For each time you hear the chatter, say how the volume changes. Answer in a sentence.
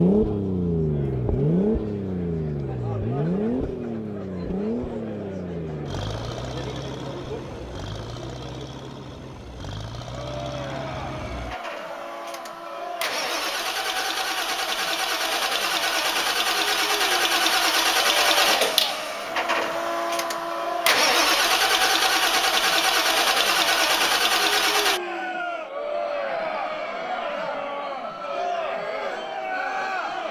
The chatter can be heard from 0.1 to 30.2 s, getting louder.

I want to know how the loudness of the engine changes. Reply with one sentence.
The loudness of the engine goes down, then up.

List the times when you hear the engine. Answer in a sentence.
The engine can be heard from 0.0 to 25.0 s.